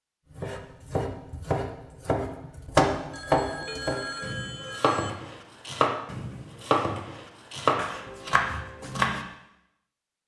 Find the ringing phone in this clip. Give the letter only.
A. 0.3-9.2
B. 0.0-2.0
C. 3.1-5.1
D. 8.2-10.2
C.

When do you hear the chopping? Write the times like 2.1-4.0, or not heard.
0.3-9.2.